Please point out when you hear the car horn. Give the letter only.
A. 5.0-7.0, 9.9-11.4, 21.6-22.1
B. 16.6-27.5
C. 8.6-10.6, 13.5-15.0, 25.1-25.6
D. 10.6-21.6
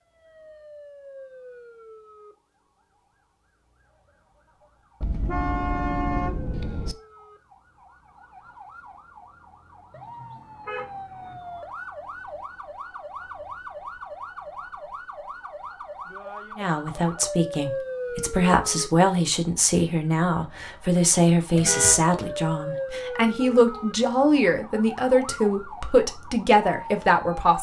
A.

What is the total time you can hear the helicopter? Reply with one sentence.
The helicopter can't be heard in this clip.